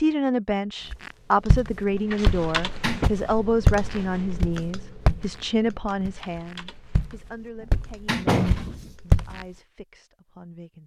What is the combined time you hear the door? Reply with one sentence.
You can hear the door for 2 seconds altogether.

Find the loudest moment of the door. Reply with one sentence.
The loudest moment of the door is at 8 seconds.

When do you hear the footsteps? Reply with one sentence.
The footsteps can be heard from 0.9 to 9.4 s.